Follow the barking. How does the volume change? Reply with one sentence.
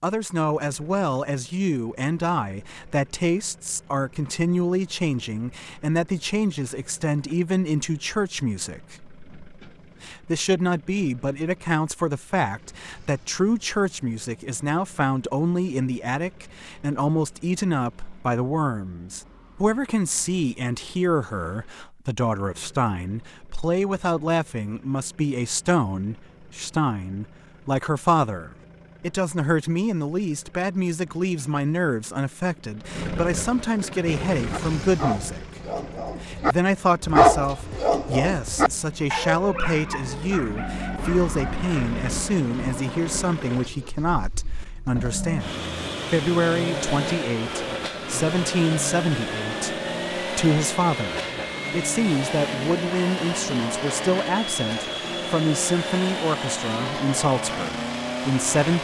The volume of the barking goes up, then down.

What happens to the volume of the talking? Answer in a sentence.
The volume of the talking stays about the same.